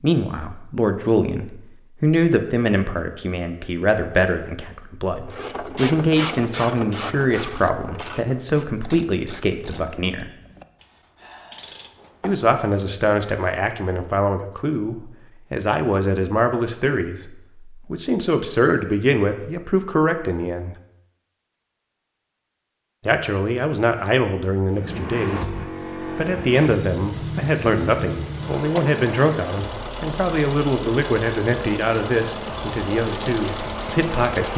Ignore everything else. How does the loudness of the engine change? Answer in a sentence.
The loudness of the engine stays about the same.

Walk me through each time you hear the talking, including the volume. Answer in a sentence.
You can hear the talking from 0.0 to 10.3 s, at a steady volume; from 12.2 to 20.8 s, at a steady volume; and from 23.1 to 34.5 s, at a steady volume.